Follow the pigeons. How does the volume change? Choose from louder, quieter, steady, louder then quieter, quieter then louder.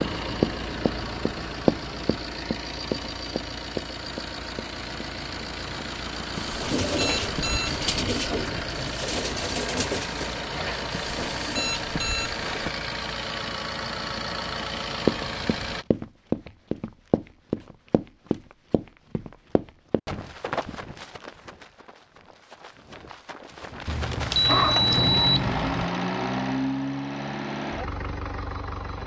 quieter.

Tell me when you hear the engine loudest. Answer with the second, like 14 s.
25 s.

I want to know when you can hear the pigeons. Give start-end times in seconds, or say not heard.
6.6-11.8.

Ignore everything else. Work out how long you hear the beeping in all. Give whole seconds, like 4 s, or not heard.
5 s.